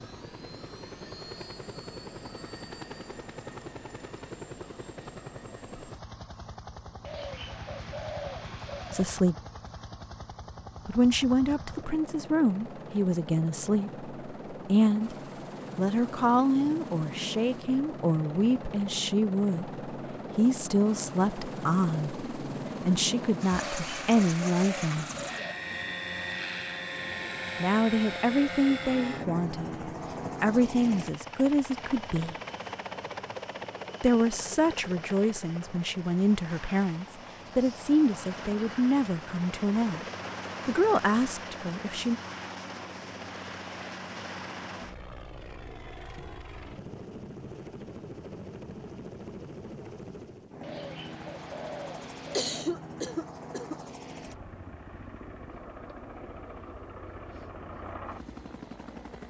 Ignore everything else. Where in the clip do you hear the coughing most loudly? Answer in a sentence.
The loudest moment of the coughing is at 53 seconds.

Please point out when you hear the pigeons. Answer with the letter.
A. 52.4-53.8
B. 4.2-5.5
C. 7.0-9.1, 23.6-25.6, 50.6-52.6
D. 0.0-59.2
C.